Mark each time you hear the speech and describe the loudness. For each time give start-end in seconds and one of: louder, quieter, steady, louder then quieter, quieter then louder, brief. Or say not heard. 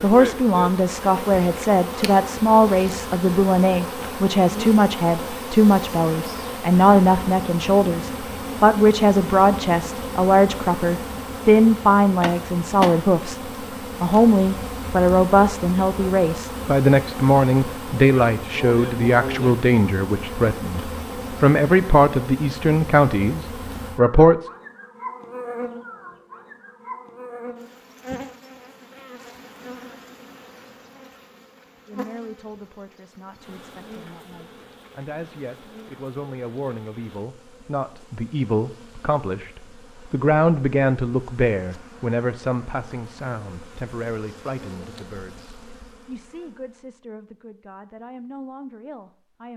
0.0-24.4 steady
31.9-49.5 louder then quieter.